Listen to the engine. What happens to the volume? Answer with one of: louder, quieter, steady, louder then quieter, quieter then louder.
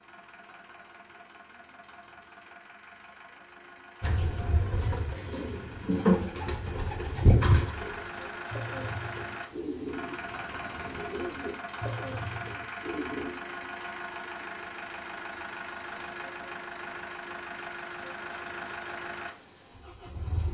louder.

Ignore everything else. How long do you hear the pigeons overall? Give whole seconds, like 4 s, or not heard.
9 s.